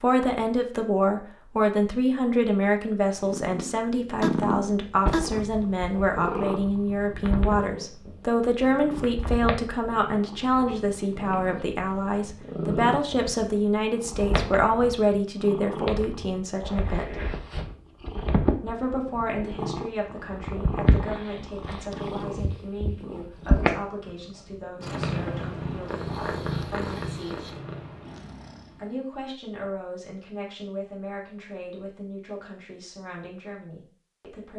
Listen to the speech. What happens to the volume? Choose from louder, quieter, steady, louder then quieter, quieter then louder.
quieter.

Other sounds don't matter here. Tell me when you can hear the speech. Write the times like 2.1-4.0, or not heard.
0.0-17.2, 18.6-27.6, 28.8-34.5.